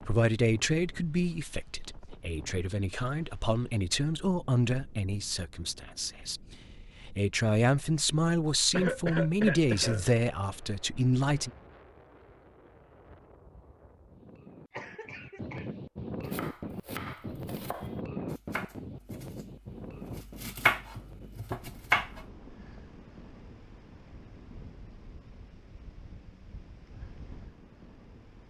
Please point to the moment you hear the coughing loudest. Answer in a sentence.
The volume of the coughing peaks at 9 seconds.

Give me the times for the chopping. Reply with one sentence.
You can hear the chopping from 16.2 to 22.2 s.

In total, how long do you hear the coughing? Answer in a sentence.
You can hear the coughing for 3 seconds altogether.